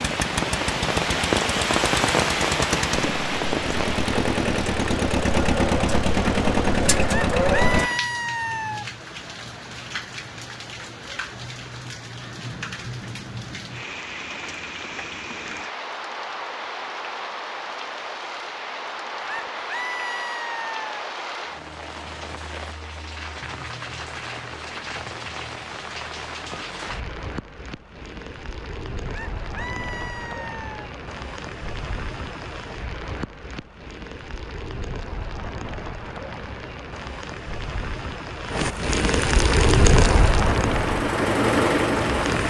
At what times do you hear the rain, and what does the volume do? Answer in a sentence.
The rain can be heard from 0.0 to 42.4 s, getting quieter then louder.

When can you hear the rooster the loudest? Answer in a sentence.
The loudest moment of the rooster is at 8 seconds.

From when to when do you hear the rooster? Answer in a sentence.
You can hear the rooster from 7.0 to 8.8 s, from 19.1 to 20.9 s and from 29.1 to 30.9 s.